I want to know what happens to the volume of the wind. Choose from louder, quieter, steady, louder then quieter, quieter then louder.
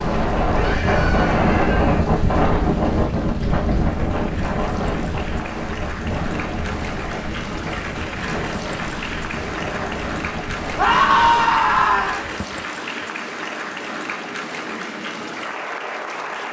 quieter.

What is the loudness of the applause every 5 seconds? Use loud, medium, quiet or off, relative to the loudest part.
medium, loud, loud, loud.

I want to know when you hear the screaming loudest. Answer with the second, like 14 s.
11 s.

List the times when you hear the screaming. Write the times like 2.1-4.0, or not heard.
0.5-2.0, 10.8-12.2.